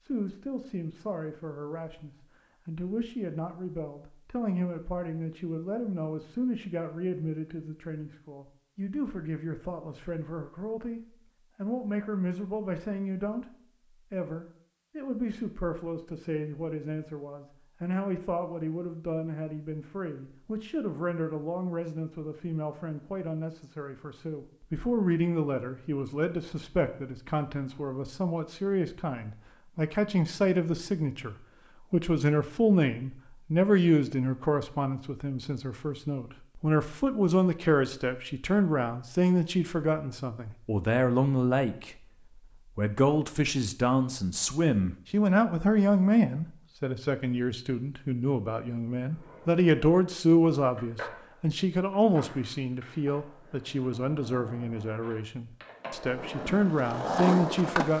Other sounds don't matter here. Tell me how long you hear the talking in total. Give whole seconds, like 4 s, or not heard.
57 s.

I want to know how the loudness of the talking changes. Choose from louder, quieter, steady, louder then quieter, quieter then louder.
louder.